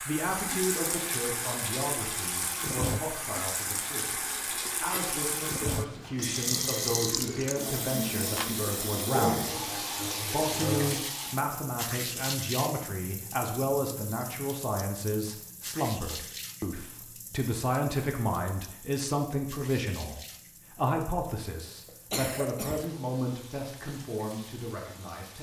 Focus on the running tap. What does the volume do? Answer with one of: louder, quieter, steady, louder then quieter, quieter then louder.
quieter.